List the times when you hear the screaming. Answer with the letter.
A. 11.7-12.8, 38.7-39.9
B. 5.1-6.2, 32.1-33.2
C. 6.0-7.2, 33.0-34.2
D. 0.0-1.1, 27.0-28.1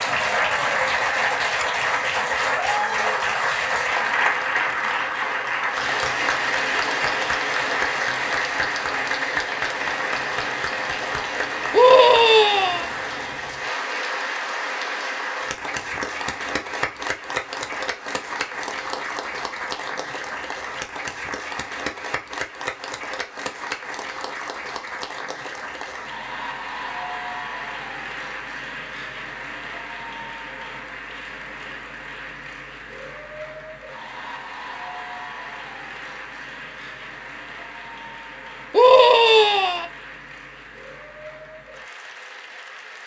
A.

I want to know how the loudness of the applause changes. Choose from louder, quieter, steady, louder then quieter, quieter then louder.
quieter.